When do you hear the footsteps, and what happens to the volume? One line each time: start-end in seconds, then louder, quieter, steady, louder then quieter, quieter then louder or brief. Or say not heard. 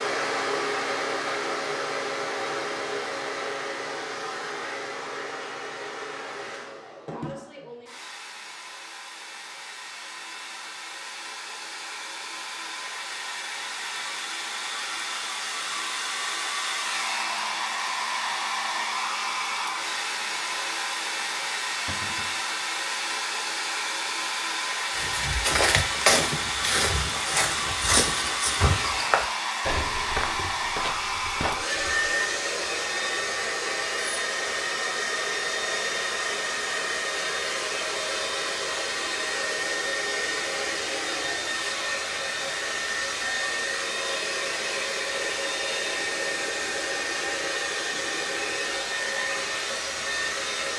24.9-32.1 quieter.